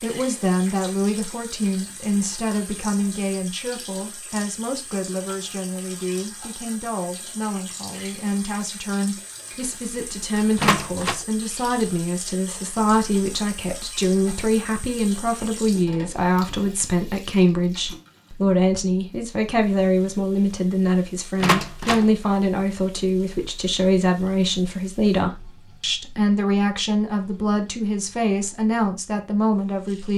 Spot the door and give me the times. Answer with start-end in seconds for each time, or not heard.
10.6-11.2, 21.4-22.1.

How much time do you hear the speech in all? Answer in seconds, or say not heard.
30 s.